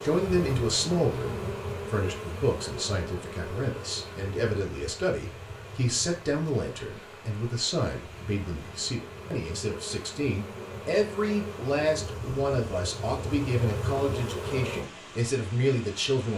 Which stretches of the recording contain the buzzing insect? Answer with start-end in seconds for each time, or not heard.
0.0-14.9.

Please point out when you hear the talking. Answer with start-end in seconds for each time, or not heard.
0.0-16.3.